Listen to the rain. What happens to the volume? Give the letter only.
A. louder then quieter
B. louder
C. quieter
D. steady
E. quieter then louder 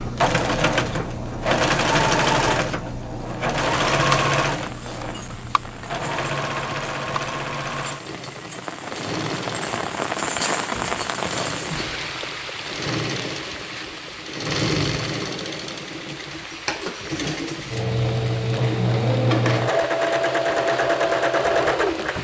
A.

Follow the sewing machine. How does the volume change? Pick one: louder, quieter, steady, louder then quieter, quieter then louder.
quieter then louder.